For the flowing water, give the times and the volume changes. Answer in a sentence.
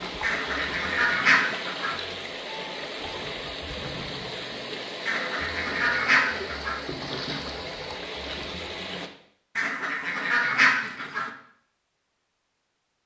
The flowing water can be heard from 0.0 to 9.1 s, at a steady volume.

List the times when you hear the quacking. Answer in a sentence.
You can hear the quacking from 0.2 to 2.0 s, from 5.0 to 6.8 s and from 9.6 to 11.3 s.